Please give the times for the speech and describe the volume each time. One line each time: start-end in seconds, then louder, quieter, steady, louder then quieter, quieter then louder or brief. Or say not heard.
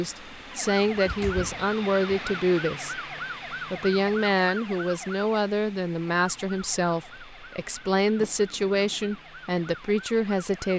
0.0-10.7 steady.